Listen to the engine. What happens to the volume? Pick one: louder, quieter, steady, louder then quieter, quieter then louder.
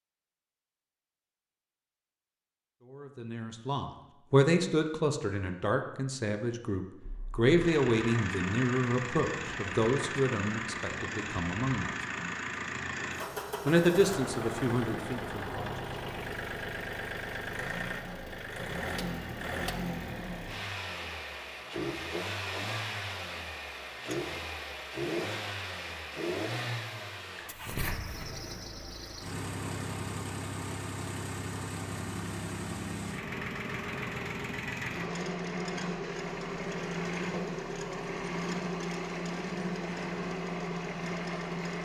steady.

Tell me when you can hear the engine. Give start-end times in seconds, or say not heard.
7.0-41.7.